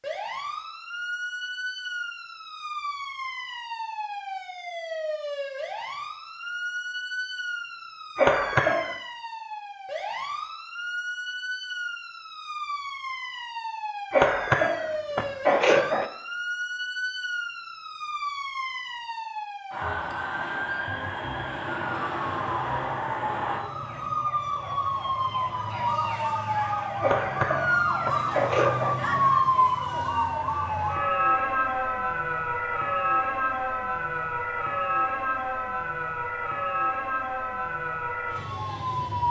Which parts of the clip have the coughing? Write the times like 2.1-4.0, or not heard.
8.2-8.9, 14.1-16.1, 27.0-28.9.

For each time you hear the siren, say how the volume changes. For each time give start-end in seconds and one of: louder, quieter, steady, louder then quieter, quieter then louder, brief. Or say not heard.
0.0-39.2 louder.